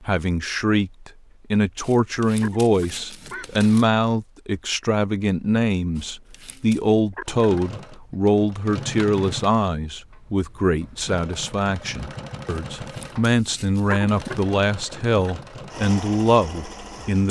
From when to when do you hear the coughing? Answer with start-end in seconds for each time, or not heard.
2.4-3.5, 7.1-7.5, 13.8-14.3.